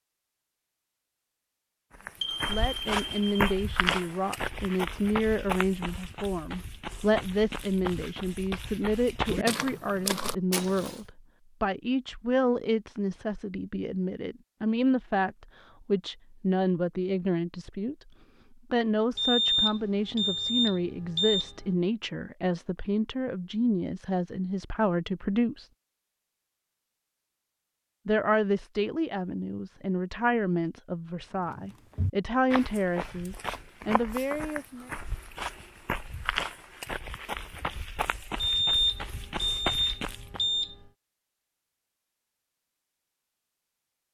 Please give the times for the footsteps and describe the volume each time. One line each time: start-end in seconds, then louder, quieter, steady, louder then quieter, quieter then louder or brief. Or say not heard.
2.0-11.0 quieter then louder
31.4-40.5 steady.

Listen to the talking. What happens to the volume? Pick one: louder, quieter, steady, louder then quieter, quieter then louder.
steady.